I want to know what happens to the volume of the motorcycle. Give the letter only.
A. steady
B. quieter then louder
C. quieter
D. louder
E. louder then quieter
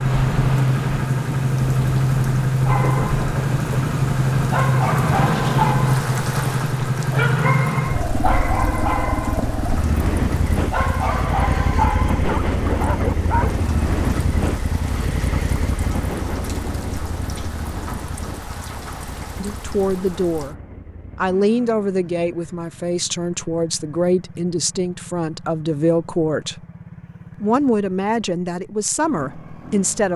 C.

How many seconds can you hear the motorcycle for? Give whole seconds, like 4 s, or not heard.
30 s.